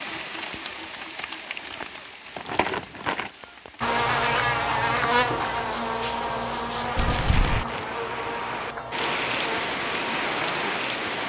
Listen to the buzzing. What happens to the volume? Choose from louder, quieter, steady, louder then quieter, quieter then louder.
quieter.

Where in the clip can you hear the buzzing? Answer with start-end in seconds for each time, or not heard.
3.8-11.2.